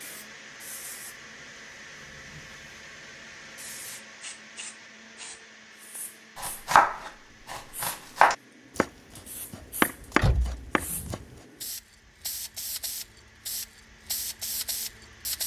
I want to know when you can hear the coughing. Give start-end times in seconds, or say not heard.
not heard.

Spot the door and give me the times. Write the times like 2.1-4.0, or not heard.
10.2-10.7.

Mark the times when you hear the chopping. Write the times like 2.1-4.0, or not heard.
6.3-11.4.